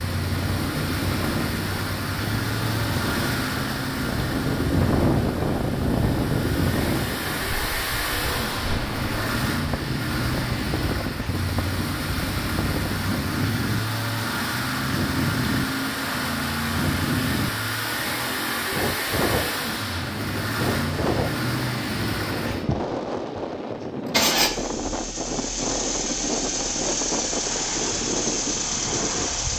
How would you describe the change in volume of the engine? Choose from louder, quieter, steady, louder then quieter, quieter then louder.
steady.